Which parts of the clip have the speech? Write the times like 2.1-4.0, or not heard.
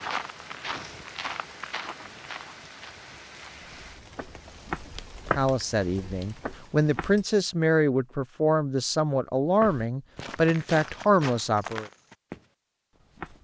5.2-11.8.